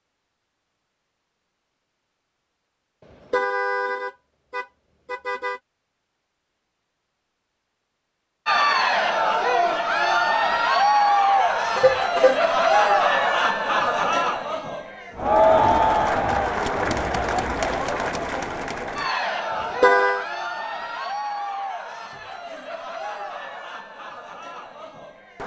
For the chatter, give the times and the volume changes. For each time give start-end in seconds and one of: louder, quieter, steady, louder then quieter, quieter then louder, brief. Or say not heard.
8.4-25.4 quieter.